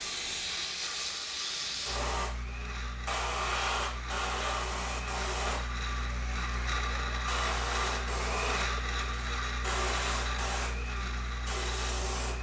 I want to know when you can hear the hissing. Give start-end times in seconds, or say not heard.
0.0-12.3.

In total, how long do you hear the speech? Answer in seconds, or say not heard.
not heard.